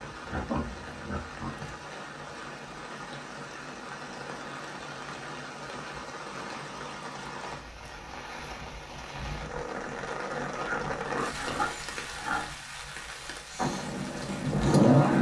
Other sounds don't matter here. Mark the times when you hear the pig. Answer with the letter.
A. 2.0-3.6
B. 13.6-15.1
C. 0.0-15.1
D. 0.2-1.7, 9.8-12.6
D.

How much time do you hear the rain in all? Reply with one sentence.
The rain can be heard for 15 seconds in total.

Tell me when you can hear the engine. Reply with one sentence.
The engine can be heard from 13.6 to 15.1 s.